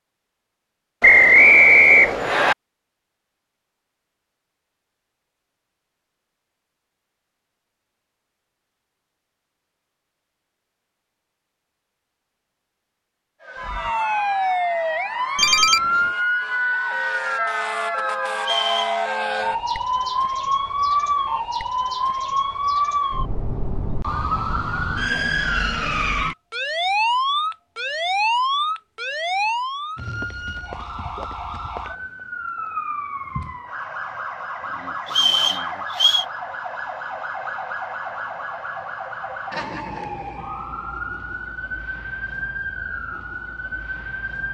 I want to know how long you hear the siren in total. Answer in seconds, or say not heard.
31 s.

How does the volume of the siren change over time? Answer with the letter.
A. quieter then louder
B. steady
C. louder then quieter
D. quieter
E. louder
D.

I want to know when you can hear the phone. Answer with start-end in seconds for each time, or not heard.
15.3-16.1.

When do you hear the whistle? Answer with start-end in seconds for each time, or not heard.
1.0-2.5, 18.4-19.4, 35.0-36.2.